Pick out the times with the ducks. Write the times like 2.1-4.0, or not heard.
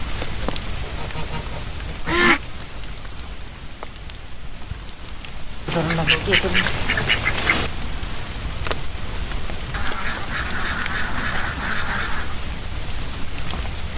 0.1-2.4, 5.7-7.7, 9.7-12.3.